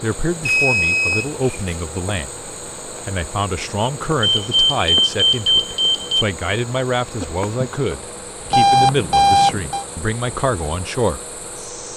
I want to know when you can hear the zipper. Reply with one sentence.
You can't hear the zipper here.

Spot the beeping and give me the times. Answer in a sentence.
You can hear the beeping from 0.5 to 1.8 s, from 4.2 to 6.2 s and from 8.5 to 9.8 s.